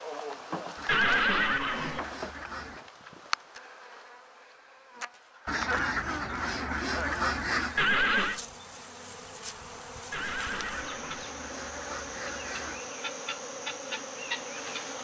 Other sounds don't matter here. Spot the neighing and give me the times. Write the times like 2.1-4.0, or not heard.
0.8-2.0, 7.8-8.4, 10.1-11.2.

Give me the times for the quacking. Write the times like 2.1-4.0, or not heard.
0.8-2.9, 5.5-7.8, 10.2-12.9.